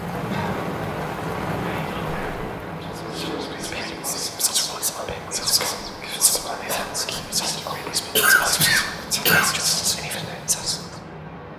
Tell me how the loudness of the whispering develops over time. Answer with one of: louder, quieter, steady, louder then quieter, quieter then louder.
louder.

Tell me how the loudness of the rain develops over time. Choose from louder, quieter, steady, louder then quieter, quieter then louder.
quieter.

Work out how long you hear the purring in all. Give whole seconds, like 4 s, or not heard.
not heard.